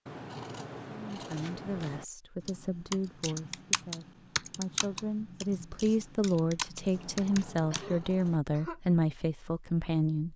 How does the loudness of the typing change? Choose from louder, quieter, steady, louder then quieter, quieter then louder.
quieter then louder.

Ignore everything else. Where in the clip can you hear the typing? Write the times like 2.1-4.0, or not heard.
2.5-7.8.